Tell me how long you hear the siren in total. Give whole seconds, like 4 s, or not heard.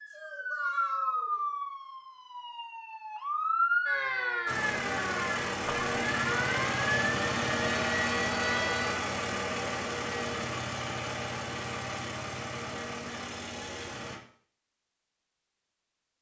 9 s.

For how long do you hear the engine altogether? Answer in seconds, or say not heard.
10 s.